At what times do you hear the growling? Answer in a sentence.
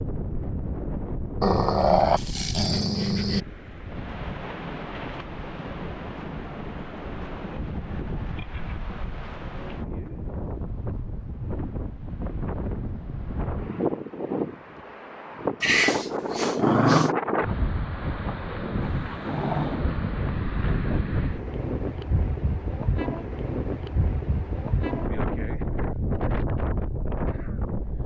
The growling can be heard from 1.4 to 3.5 s, from 15.6 to 17.1 s and from 18.8 to 19.9 s.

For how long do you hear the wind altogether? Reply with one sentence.
The wind can be heard for 28 seconds in total.